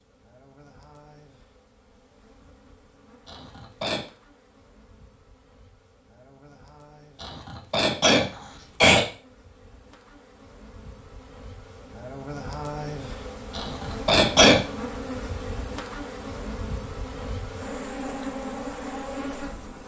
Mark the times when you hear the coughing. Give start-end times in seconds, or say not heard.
3.2-4.0, 7.2-9.1, 13.6-14.6.